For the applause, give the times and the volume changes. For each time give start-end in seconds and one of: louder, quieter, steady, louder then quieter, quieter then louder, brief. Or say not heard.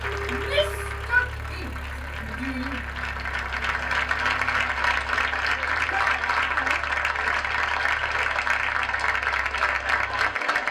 0.0-10.6 louder.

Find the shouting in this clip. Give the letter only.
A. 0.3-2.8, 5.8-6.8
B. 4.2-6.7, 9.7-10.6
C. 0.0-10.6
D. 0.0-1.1
A.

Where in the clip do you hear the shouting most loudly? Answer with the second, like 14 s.
1 s.